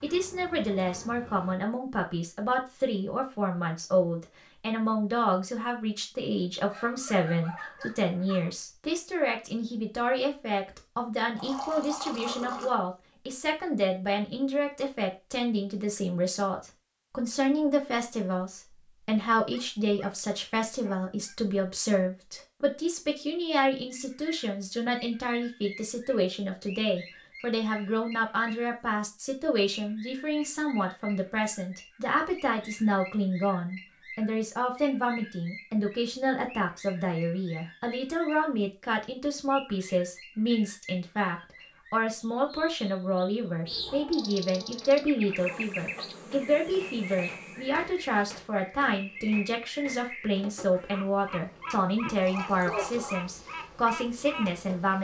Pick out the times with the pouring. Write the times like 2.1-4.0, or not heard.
11.3-12.7, 52.1-53.2.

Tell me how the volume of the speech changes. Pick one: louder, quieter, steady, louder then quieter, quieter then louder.
steady.